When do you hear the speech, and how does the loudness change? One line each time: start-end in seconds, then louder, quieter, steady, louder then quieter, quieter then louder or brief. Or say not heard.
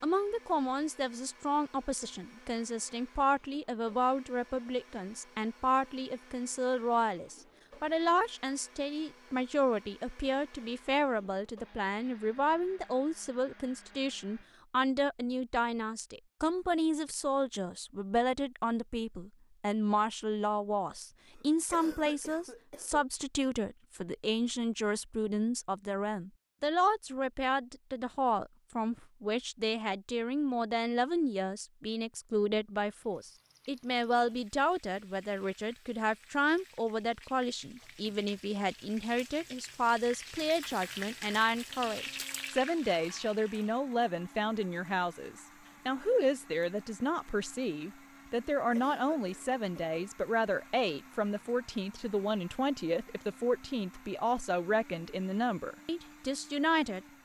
0.0-57.2 steady.